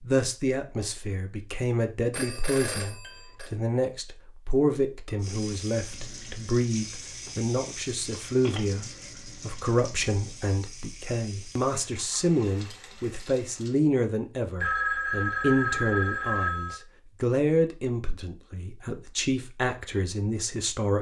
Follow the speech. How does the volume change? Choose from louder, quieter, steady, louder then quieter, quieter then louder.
steady.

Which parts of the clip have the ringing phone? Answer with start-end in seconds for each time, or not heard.
2.1-3.5, 7.2-8.6, 14.6-16.8.